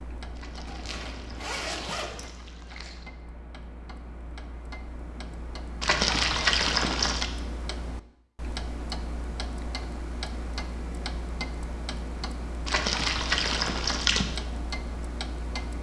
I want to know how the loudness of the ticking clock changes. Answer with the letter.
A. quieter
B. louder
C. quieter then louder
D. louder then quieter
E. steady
B.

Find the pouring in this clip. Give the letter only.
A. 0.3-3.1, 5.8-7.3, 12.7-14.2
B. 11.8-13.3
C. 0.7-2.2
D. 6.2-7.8
A.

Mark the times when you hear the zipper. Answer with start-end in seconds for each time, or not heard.
0.7-2.2.